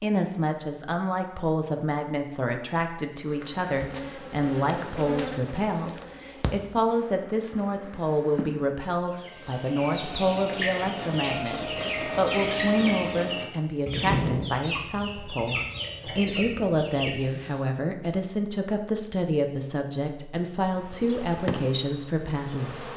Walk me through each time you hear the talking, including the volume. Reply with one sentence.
You can hear the talking from 0.0 to 22.9 s, at a steady volume.